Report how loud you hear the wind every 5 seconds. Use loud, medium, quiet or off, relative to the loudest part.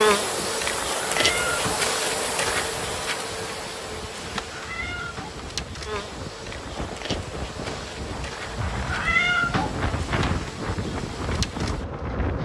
quiet, medium, loud.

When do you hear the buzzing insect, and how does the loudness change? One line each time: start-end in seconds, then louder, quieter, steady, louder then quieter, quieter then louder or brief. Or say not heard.
0.0-12.3 quieter.